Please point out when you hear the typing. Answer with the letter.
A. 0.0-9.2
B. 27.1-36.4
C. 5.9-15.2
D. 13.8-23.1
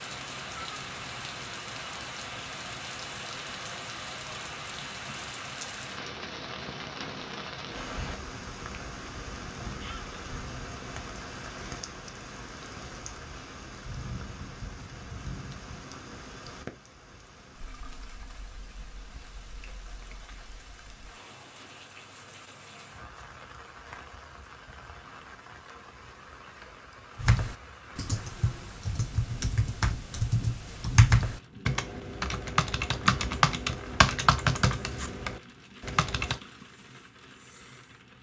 B.